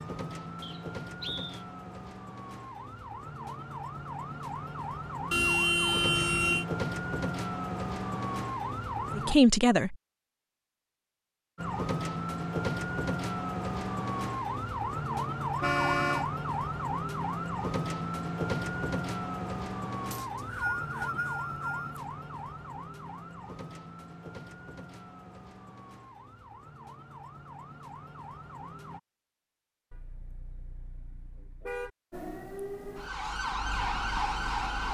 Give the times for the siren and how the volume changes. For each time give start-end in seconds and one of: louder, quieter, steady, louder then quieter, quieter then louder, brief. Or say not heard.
0.0-9.3 louder
11.6-29.0 quieter
32.1-34.9 brief.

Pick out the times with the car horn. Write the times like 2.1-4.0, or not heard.
5.3-6.7, 15.6-16.2, 29.9-31.9.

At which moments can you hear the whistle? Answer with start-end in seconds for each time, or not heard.
0.6-1.6, 20.1-22.0.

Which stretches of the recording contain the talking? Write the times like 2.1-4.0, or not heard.
9.2-9.9.